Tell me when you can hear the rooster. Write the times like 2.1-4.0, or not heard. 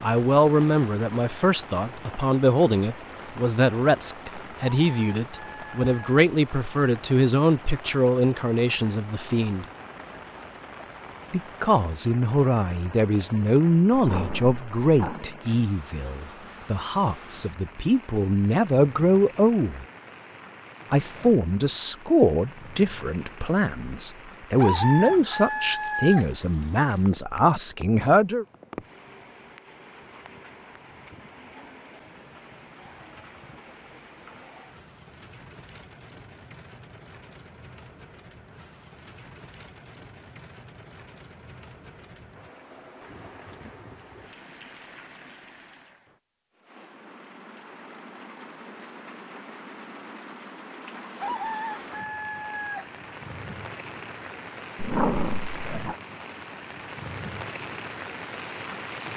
4.6-6.2, 24.6-26.2, 51.2-52.9.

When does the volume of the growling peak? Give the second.
55 s.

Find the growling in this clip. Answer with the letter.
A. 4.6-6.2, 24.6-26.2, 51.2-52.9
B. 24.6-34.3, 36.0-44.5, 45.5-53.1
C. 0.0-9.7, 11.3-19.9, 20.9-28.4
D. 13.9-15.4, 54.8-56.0
D.